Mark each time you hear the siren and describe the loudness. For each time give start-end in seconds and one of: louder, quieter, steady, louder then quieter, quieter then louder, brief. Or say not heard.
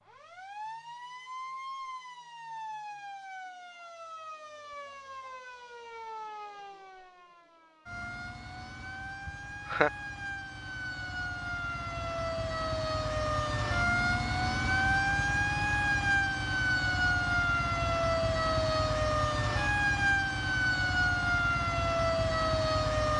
0.0-23.1 louder.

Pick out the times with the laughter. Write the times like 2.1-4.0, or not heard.
9.2-9.9.